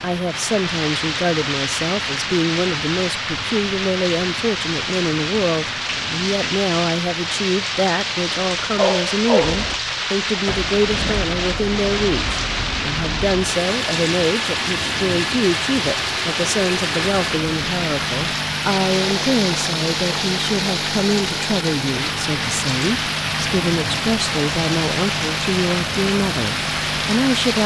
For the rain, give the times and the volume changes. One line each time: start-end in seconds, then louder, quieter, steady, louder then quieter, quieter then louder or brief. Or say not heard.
0.0-27.6 steady.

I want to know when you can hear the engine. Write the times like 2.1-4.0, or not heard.
9.4-27.6.